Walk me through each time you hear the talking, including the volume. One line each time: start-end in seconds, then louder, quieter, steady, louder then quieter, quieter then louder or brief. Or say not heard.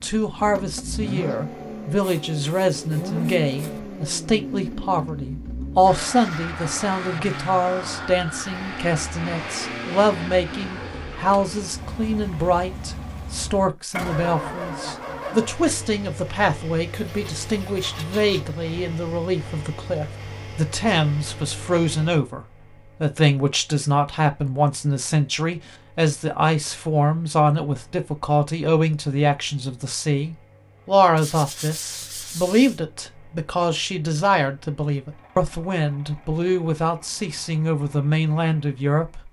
0.0-39.2 steady.